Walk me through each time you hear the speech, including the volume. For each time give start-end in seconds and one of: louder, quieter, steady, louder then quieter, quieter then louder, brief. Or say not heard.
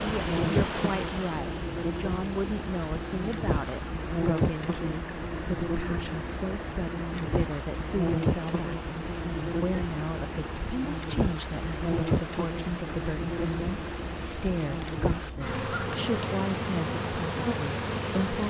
0.0-18.4 steady.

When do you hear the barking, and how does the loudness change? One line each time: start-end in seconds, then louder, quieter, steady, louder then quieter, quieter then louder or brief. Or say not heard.
not heard.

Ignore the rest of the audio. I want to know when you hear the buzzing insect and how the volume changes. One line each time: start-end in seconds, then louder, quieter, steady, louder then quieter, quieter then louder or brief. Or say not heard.
0.0-18.4 steady.